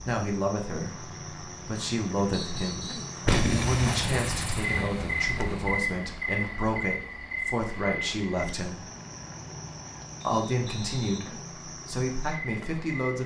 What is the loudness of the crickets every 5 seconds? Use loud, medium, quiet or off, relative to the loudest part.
medium, loud, medium.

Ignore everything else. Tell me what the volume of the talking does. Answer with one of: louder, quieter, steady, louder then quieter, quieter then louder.
steady.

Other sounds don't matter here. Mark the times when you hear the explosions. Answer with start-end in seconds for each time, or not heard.
3.2-5.7.